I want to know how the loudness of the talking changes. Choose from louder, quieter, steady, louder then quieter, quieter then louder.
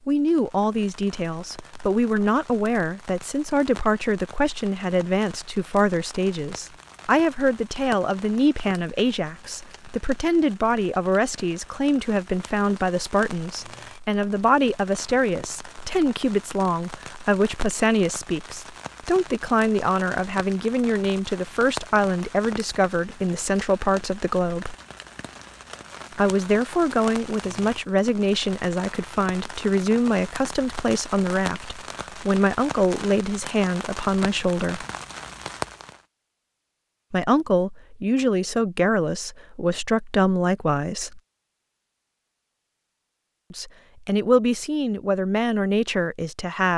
steady.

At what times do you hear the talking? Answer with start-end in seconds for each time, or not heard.
0.1-24.8, 26.1-34.9, 37.1-41.2, 43.5-46.7.